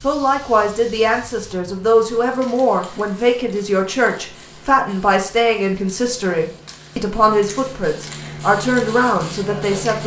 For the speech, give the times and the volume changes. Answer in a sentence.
The speech can be heard from 0.0 to 10.0 s, at a steady volume.